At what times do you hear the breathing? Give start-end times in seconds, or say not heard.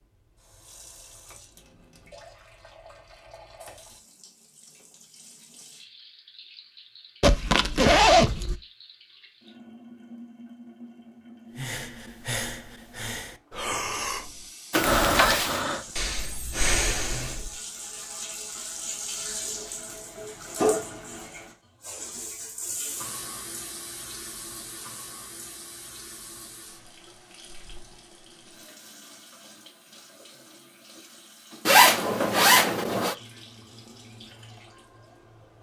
11.6-17.6.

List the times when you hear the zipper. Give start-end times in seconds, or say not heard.
7.2-8.6, 14.7-15.6, 31.6-33.1.